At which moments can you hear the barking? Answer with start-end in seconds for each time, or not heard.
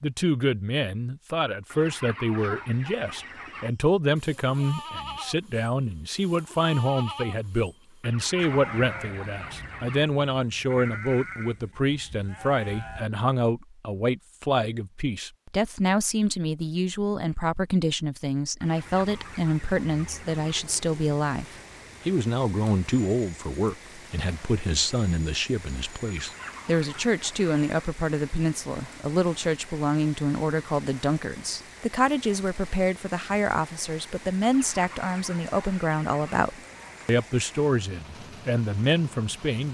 not heard.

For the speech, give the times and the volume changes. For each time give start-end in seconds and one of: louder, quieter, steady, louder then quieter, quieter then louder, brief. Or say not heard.
0.0-39.6 steady.